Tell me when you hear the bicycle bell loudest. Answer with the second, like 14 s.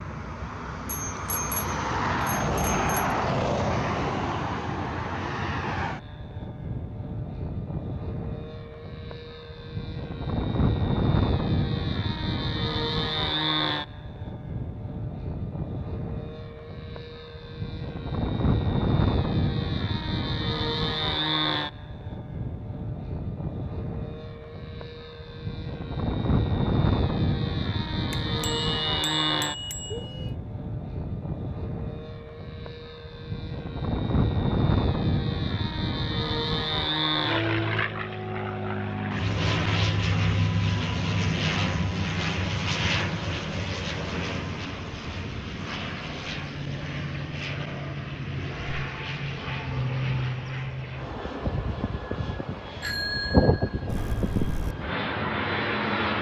53 s.